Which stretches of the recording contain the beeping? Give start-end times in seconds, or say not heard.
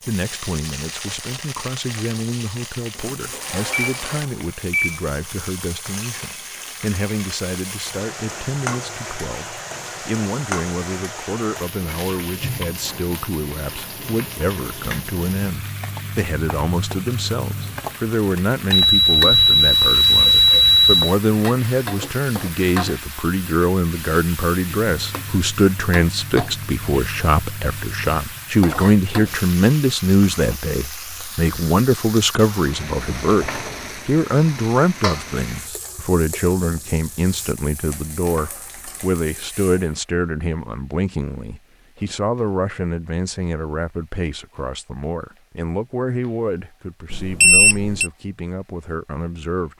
3.0-5.0, 18.7-21.1, 47.1-48.1.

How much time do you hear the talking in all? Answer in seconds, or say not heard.
50 s.